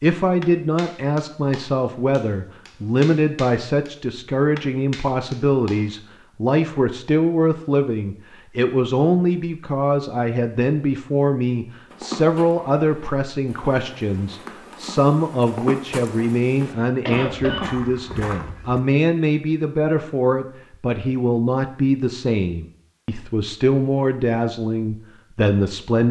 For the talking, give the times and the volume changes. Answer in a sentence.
The talking can be heard from 0.0 to 26.0 s, at a steady volume.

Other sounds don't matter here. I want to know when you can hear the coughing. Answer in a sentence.
The coughing can be heard from 16.6 to 17.7 s.